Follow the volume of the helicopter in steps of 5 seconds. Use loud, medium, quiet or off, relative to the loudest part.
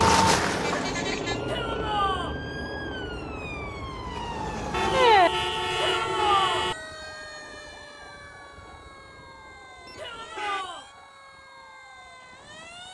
loud, quiet, quiet.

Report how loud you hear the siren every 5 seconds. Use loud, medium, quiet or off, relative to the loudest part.
loud, loud, quiet.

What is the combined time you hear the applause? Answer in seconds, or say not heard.
not heard.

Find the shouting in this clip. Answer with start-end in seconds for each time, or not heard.
1.4-2.4, 5.8-6.7, 9.9-10.8.